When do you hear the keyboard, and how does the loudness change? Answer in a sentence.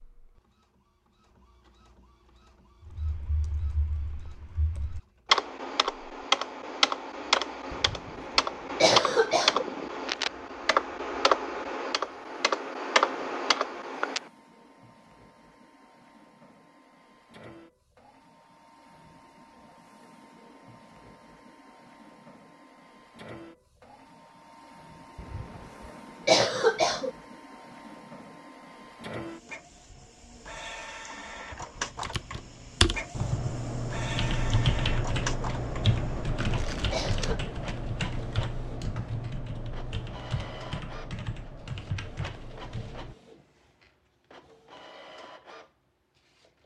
The keyboard can be heard from 2.9 to 14.2 s, at a steady volume; and from 31.5 to 43.1 s, getting quieter.